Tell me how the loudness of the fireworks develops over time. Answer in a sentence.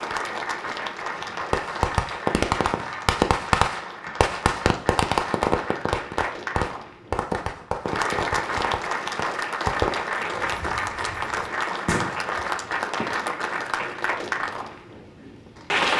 The volume of the fireworks goes down.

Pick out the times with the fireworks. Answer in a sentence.
The fireworks can be heard from 1.1 to 13.1 s.